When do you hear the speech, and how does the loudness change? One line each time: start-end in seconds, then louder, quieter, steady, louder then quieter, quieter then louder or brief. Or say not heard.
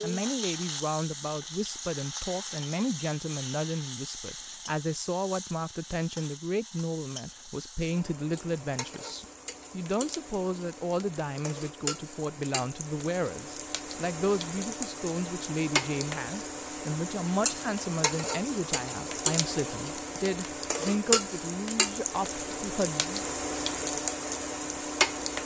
0.0-23.2 steady.